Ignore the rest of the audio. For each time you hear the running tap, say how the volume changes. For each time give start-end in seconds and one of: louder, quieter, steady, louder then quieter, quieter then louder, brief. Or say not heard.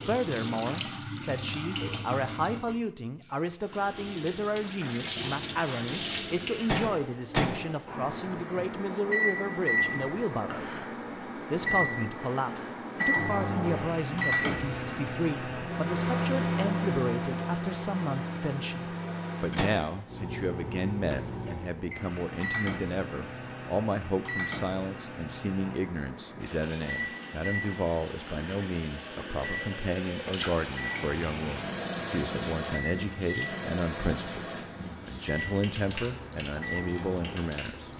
0.0-6.9 quieter then louder
26.4-37.9 louder then quieter.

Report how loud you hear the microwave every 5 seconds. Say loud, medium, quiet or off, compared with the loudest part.
off, loud, loud, loud, medium, medium, medium, medium.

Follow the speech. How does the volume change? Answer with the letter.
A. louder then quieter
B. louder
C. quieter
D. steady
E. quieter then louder
D.